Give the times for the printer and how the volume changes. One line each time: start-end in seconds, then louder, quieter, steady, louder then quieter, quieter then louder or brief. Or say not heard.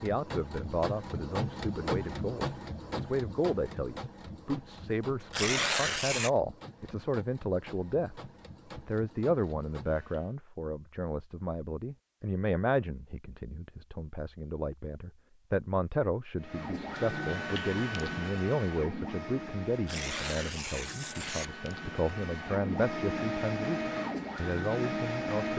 0.0-10.3 quieter
16.4-25.5 quieter then louder.